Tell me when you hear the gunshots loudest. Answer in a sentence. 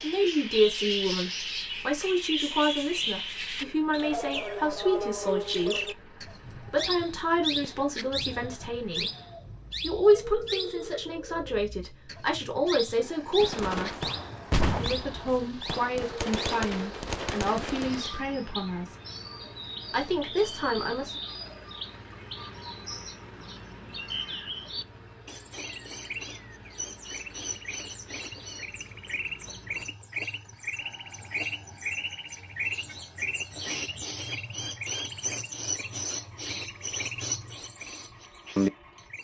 The volume of the gunshots peaks at 15 seconds.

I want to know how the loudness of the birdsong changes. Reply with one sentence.
The volume of the birdsong goes down, then up.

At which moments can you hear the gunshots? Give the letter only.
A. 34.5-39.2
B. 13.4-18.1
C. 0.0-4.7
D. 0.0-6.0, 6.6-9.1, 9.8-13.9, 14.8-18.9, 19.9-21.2
B.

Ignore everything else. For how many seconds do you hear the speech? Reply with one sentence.
You can hear the speech for 18 seconds altogether.